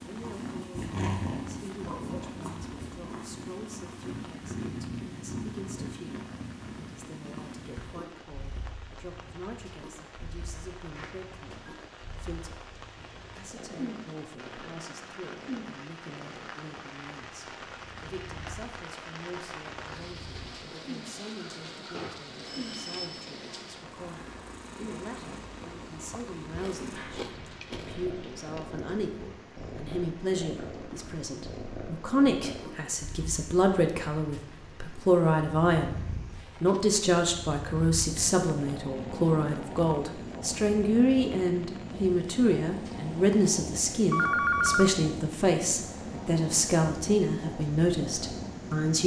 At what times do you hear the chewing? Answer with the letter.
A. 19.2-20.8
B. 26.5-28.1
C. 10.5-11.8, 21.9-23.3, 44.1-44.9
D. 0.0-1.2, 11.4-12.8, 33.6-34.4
B.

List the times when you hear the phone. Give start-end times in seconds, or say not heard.
10.5-11.8, 21.9-23.3, 44.1-44.9.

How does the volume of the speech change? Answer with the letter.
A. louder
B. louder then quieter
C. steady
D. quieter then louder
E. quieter
A.